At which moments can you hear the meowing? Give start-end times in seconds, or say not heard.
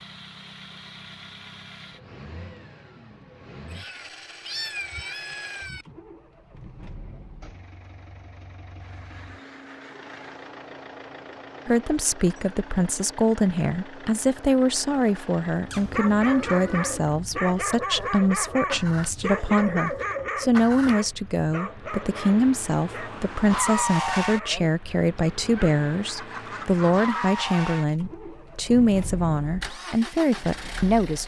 3.7-5.8, 15.7-16.9.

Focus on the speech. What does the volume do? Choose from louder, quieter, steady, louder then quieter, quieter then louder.
steady.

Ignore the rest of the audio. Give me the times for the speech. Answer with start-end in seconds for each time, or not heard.
11.7-31.2.